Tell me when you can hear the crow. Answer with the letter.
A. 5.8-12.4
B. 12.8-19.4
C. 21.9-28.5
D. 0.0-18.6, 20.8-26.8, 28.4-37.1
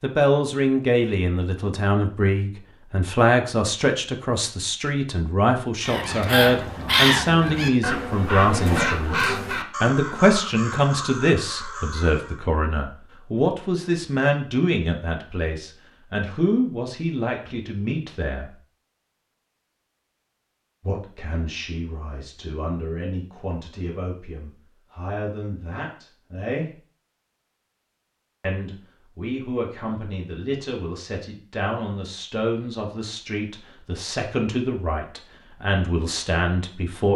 A.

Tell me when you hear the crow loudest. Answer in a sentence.
The loudest moment of the crow is at 7 seconds.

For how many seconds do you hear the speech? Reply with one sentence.
The speech can be heard for 33 seconds in total.